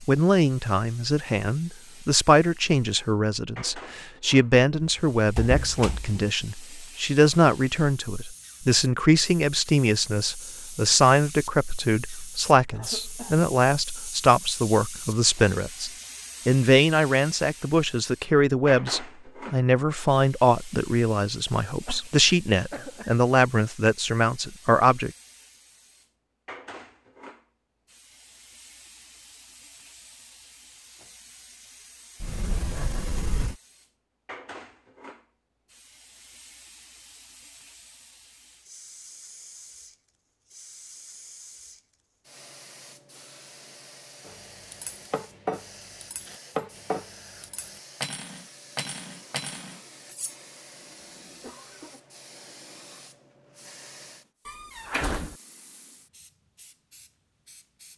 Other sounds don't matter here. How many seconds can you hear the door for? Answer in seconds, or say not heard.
4 s.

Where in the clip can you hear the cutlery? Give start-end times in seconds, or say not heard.
44.2-50.4.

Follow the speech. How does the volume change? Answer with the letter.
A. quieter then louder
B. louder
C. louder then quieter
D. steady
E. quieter
D.